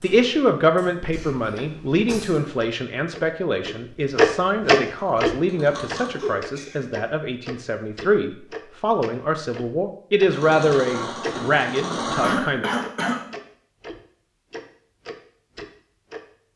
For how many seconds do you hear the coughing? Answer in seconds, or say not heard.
3 s.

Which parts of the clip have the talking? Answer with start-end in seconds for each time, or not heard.
0.0-12.7.